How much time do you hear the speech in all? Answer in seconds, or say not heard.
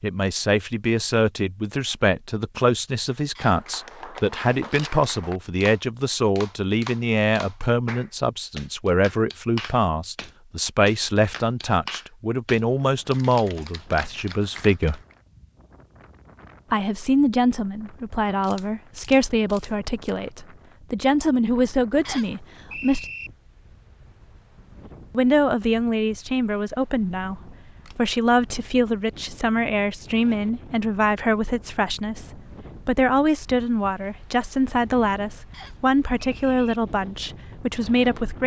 35 s.